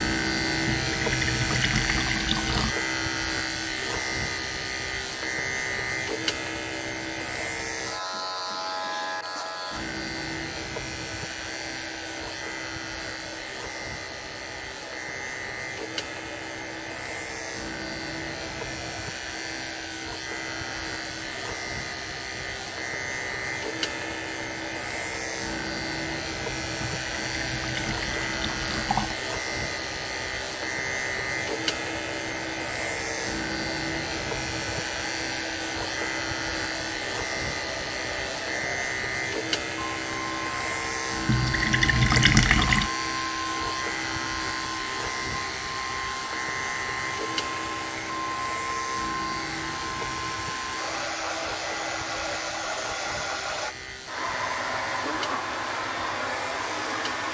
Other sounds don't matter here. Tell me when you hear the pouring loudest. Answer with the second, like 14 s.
42 s.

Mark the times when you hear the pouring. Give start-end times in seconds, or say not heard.
0.7-2.8, 26.8-29.1, 41.2-42.9.